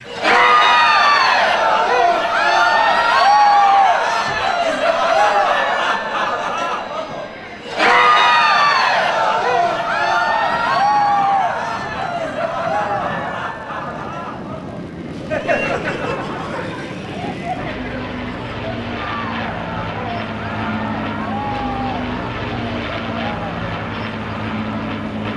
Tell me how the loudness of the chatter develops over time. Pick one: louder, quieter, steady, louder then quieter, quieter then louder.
quieter.